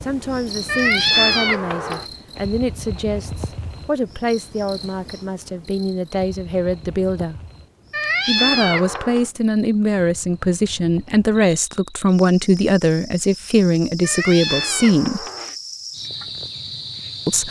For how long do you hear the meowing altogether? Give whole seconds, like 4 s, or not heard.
4 s.